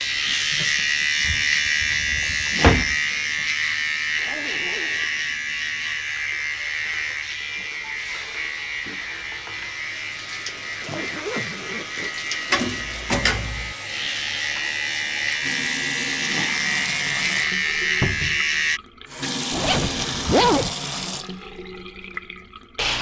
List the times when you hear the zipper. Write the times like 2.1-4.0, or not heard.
4.2-5.1, 10.4-12.1, 19.5-20.8.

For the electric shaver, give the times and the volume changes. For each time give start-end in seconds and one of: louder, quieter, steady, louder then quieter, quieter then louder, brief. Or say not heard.
0.0-18.8 quieter then louder.